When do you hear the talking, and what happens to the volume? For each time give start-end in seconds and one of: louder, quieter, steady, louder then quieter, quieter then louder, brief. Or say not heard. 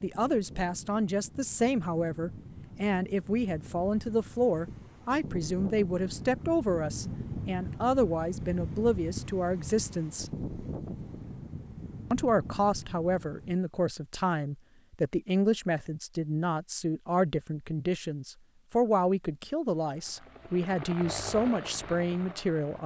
0.0-10.3 steady
12.1-22.8 steady.